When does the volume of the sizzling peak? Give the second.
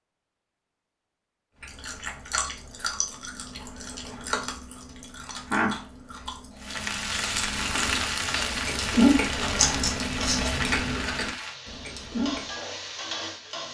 8 s.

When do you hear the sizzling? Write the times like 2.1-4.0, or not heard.
6.6-13.6.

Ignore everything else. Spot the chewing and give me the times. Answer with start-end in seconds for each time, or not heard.
1.6-12.5.